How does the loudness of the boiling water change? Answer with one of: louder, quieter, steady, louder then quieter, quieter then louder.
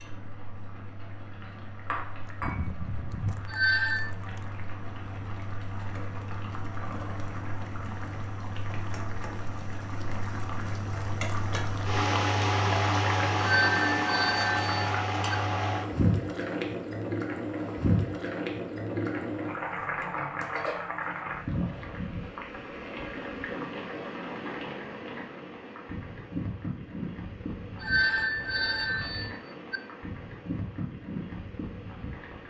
louder then quieter.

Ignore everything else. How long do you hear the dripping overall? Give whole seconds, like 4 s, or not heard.
not heard.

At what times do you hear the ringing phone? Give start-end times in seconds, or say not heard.
3.5-4.1, 13.4-15.3, 27.8-29.8.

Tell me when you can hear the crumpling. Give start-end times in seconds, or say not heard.
2.2-4.5.